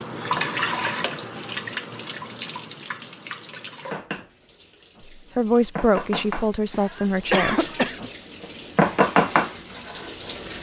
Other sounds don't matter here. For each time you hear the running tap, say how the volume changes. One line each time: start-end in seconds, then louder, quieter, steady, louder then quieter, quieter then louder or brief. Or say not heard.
0.0-10.5 quieter then louder.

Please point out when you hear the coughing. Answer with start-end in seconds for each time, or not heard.
6.7-8.1.